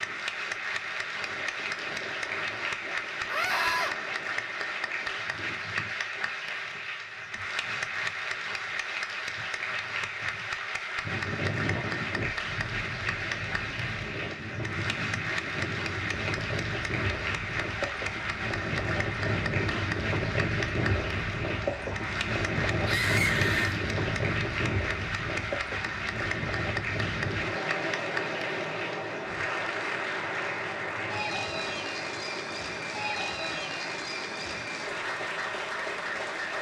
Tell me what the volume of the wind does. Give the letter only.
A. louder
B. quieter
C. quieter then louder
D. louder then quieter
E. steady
D.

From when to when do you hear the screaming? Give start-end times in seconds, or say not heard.
3.2-4.0, 22.9-23.8.